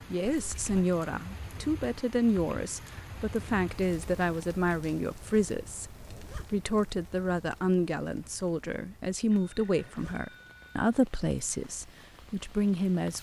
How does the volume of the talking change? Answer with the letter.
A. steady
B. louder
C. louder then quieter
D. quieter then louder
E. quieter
A.